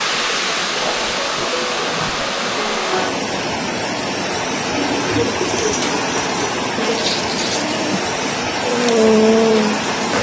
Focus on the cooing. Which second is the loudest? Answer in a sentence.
The volume of the cooing peaks at 5 seconds.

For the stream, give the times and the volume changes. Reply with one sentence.
You can hear the stream from 0.0 to 10.1 s, at a steady volume.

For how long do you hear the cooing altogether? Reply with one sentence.
You can hear the cooing for 2 seconds altogether.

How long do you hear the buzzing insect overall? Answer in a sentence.
The buzzing insect can be heard for 3 seconds in total.